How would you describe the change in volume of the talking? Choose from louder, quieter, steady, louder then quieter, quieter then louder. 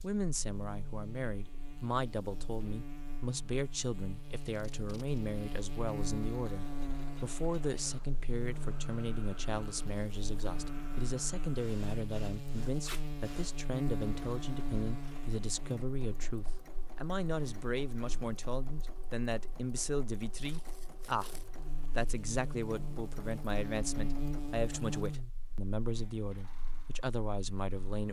steady.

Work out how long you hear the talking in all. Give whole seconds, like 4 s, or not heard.
28 s.